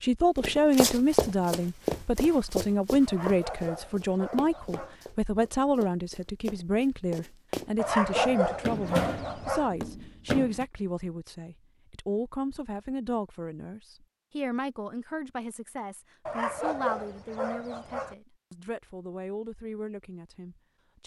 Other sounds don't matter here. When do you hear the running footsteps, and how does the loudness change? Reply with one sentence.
You can hear the running footsteps from 0.3 to 10.7 s, getting quieter then louder.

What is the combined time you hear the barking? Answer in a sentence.
You can hear the barking for 6 seconds altogether.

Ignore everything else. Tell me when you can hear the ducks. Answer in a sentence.
The ducks can't be heard in this clip.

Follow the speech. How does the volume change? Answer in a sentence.
The loudness of the speech goes down.